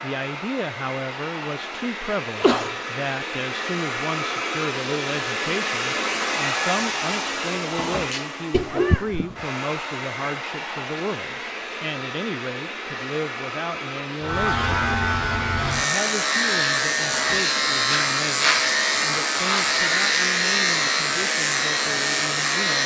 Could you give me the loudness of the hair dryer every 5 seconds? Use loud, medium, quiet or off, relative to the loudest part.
loud, loud, medium, medium, medium.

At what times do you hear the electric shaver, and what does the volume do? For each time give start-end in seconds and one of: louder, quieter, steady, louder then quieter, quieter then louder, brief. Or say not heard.
14.2-22.8 steady.